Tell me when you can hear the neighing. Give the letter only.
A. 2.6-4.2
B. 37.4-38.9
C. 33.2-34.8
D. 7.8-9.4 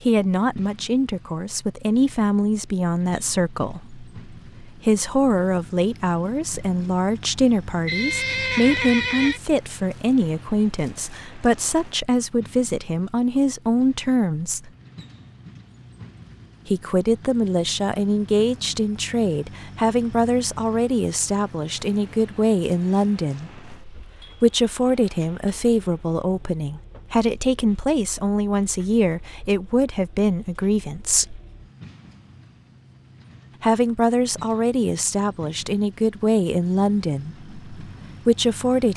D.